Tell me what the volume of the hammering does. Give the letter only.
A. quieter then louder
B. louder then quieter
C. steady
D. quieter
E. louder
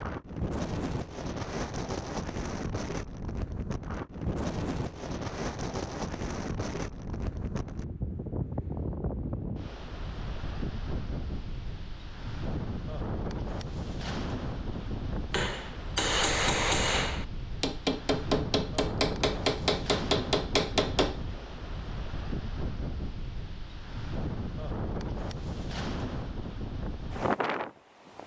C.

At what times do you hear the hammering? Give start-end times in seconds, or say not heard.
15.3-21.2.